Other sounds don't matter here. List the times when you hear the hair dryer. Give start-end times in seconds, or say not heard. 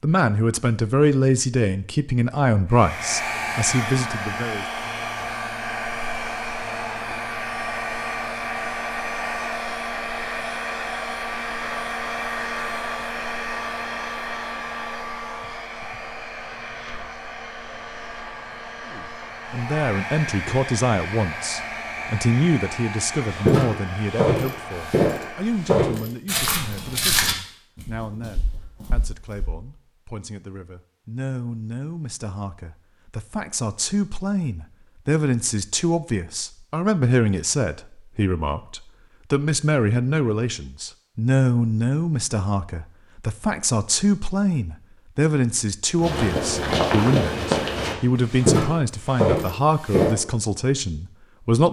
2.7-25.8.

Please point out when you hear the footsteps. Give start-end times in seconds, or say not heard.
23.3-29.5, 46.0-50.1.